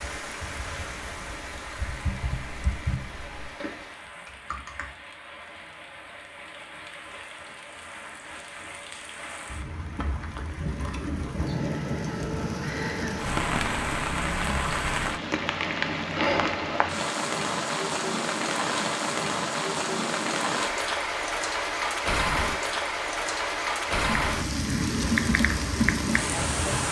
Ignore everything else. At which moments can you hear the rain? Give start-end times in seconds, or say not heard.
0.0-26.8.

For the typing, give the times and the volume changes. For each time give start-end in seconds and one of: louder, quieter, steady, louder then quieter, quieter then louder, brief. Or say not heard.
0.0-5.0 louder then quieter
23.9-26.8 brief.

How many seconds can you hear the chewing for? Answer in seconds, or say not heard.
not heard.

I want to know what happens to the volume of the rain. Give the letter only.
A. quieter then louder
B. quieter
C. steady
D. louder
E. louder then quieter
D.